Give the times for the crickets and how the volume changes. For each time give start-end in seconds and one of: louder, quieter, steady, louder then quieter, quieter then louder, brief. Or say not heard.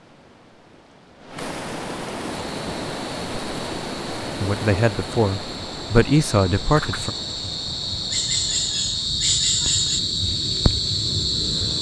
2.3-11.7 louder.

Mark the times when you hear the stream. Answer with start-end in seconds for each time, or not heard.
0.0-9.0.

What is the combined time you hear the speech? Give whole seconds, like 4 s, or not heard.
3 s.